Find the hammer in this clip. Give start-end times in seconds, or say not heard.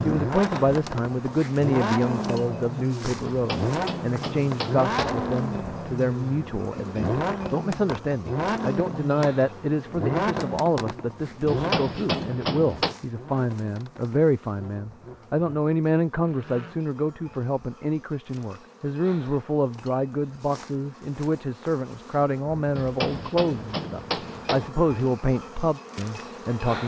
3.2-5.2, 11.4-12.9, 22.8-24.7.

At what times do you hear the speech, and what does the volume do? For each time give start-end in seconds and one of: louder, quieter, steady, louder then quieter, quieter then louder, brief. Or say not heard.
0.0-26.8 steady.